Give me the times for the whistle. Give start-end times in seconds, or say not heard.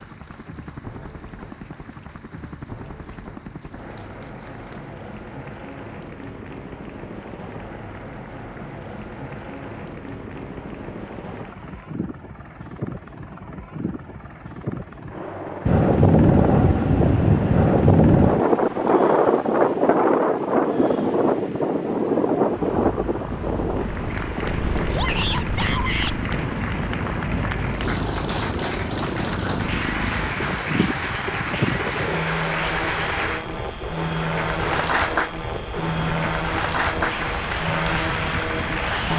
not heard.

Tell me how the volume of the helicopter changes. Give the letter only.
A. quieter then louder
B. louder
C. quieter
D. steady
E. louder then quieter
B.